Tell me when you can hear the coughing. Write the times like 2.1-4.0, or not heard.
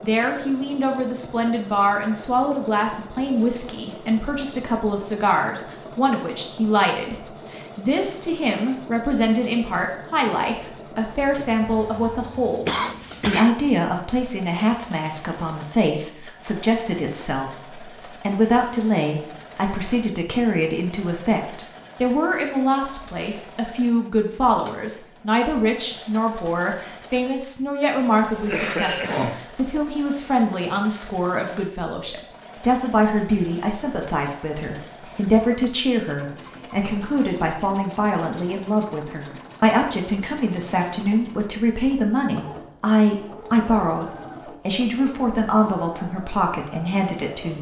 12.7-13.6, 28.2-29.4, 35.0-35.7.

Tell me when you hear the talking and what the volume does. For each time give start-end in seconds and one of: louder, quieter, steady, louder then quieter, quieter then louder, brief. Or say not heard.
0.0-47.5 steady.